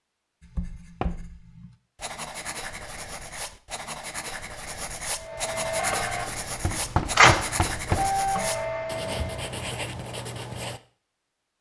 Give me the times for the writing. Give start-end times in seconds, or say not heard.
0.4-10.8.